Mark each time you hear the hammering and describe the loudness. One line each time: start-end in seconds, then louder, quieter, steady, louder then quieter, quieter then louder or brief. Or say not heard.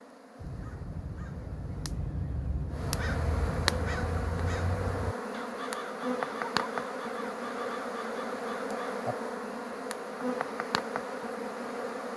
not heard.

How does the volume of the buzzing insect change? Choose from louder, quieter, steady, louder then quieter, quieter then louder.
louder.